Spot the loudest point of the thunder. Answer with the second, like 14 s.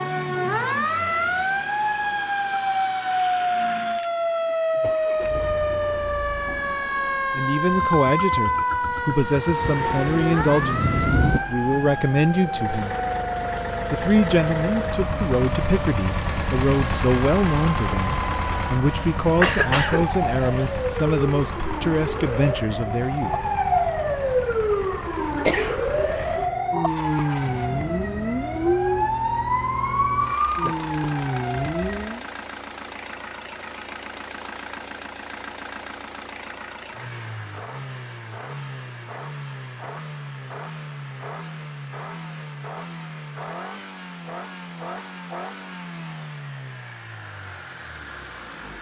11 s.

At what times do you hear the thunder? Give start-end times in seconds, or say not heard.
9.6-11.4.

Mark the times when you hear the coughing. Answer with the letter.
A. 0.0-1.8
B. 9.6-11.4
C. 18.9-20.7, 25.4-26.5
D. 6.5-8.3
C.